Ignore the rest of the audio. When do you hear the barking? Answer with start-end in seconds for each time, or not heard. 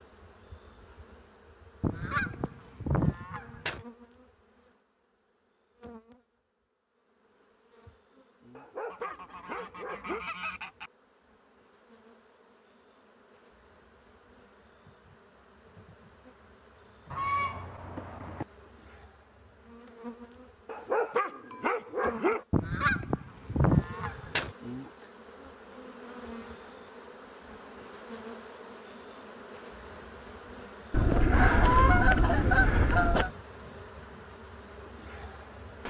8.6-10.2, 20.6-22.4.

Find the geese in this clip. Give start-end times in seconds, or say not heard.
1.8-3.8, 8.9-10.9, 17.1-18.4, 22.5-24.5, 30.9-33.3.